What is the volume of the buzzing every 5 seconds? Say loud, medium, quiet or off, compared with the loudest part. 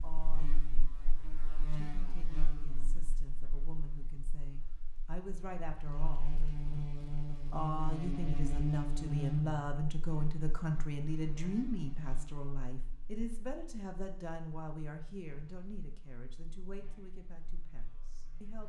medium, loud, quiet, quiet.